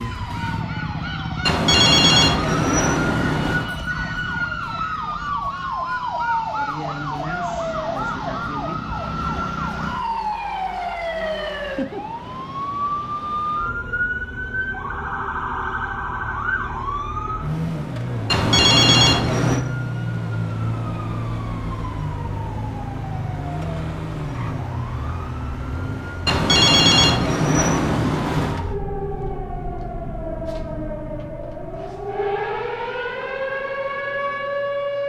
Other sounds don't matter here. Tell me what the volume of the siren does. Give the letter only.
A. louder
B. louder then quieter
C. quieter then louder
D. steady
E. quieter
D.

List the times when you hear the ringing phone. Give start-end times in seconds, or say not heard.
1.4-3.7, 18.3-19.6, 26.2-28.6.